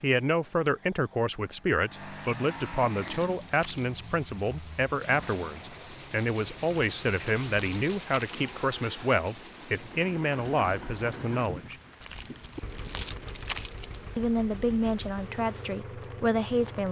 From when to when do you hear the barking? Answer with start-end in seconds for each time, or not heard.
not heard.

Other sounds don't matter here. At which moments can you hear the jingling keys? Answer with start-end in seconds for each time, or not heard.
2.1-4.1, 6.7-8.7, 12.0-14.0.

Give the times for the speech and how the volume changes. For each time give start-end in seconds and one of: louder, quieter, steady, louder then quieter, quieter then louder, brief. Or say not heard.
0.0-11.8 steady
14.2-16.8 brief.